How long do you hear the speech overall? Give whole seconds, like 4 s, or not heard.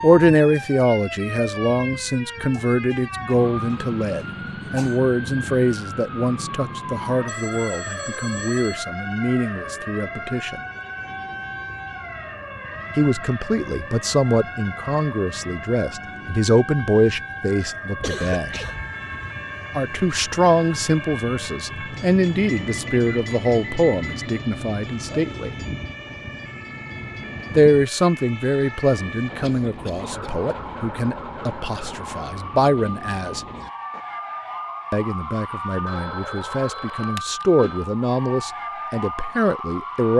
33 s.